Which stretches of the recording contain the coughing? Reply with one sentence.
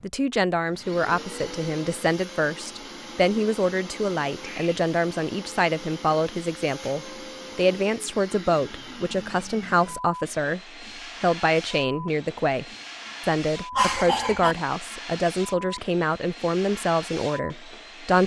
The coughing can be heard from 13.8 to 14.6 s.